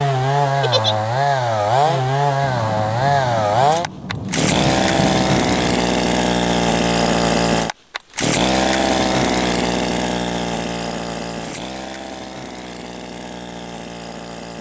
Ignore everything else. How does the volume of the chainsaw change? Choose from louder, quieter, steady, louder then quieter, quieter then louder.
quieter.